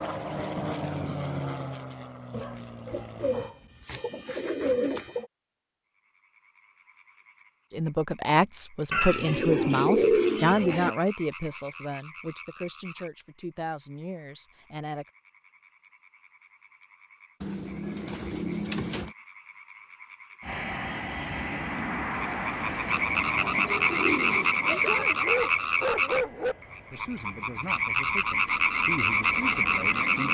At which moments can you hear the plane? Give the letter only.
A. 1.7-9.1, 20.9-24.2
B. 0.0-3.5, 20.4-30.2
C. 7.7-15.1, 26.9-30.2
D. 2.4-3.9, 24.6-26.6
B.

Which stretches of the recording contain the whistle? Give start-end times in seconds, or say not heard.
not heard.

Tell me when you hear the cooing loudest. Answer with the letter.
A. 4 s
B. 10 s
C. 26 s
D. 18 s
B.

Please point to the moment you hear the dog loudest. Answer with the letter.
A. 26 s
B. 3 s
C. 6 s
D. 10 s
A.